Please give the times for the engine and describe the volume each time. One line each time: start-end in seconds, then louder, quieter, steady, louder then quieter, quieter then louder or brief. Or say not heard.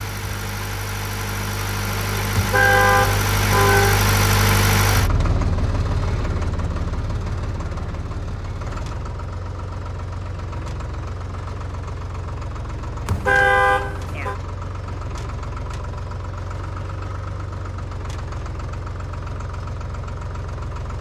0.0-20.9 quieter.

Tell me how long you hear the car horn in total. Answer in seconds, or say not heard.
3 s.